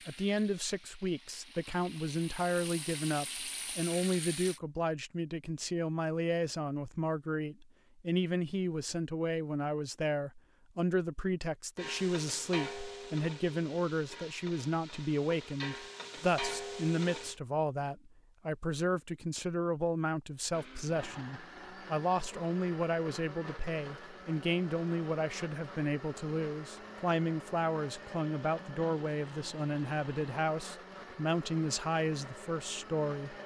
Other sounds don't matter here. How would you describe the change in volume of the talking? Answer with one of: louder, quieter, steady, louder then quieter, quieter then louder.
steady.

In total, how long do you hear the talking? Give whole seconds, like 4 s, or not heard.
33 s.